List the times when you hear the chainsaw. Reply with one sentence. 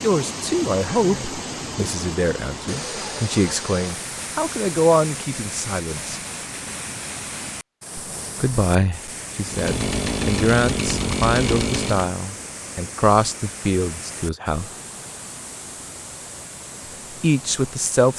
The chainsaw can be heard from 9.4 to 12.1 s.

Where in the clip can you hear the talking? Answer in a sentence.
The talking can be heard from 0.0 to 6.2 s, from 8.4 to 14.7 s and from 17.2 to 18.1 s.